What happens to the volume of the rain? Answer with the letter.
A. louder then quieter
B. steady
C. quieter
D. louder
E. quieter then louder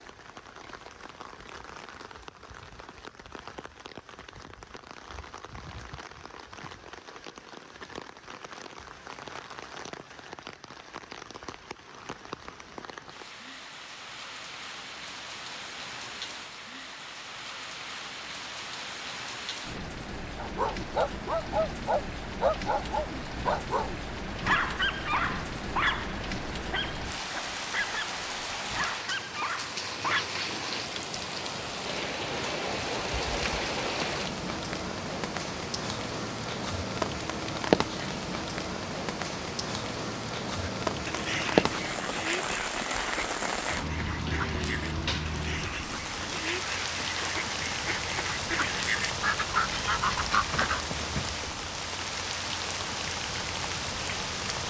D.